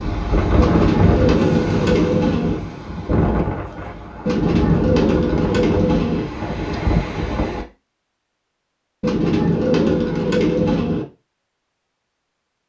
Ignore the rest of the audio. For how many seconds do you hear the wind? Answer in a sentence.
You can hear the wind for 8 seconds altogether.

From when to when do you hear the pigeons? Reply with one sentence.
You can hear the pigeons from 0.6 to 2.6 s, from 4.2 to 6.2 s and from 9.0 to 11.1 s.